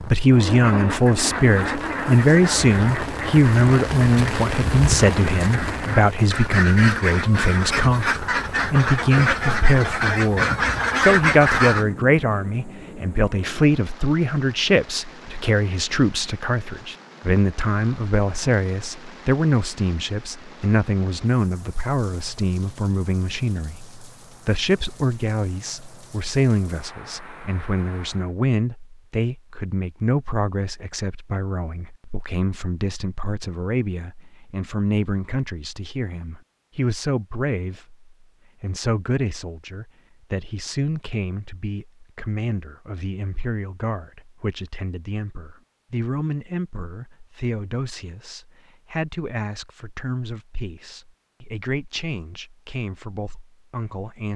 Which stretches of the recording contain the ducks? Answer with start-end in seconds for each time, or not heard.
0.3-11.8.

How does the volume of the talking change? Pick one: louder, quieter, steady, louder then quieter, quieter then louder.
quieter.